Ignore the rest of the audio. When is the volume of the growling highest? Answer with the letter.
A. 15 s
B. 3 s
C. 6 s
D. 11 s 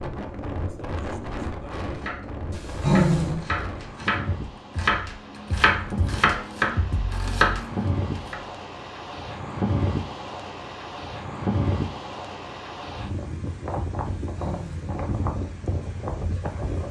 B.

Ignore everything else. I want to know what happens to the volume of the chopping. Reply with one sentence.
The loudness of the chopping goes up.